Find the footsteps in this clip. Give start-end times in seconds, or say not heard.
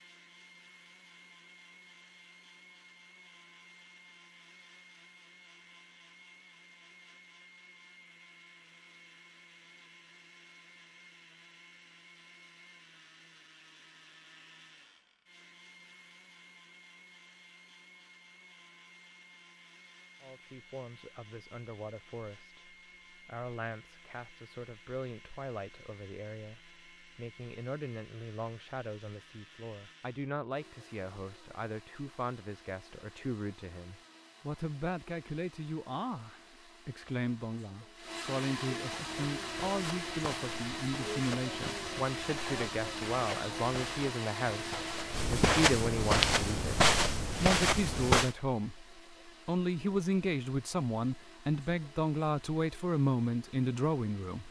38.9-48.4.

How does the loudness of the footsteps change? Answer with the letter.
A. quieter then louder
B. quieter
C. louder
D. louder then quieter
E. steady
C.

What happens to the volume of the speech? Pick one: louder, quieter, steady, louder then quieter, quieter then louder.
louder.